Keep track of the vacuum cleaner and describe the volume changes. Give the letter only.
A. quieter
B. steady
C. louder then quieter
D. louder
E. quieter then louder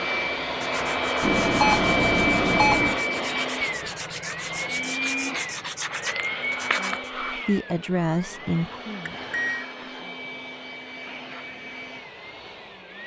A.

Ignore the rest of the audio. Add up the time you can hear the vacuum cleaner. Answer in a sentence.
You can hear the vacuum cleaner for 13 seconds altogether.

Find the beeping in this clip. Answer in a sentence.
You can hear the beeping from 1.2 to 3.0 s and from 9.1 to 9.7 s.